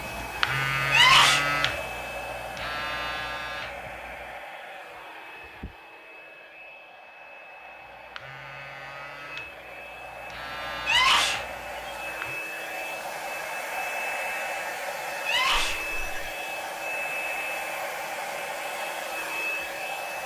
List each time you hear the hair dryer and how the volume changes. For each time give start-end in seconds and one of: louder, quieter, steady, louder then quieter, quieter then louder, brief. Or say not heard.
0.0-20.2 quieter then louder.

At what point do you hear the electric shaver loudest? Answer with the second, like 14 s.
1 s.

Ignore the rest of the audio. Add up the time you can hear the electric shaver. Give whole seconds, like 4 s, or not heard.
9 s.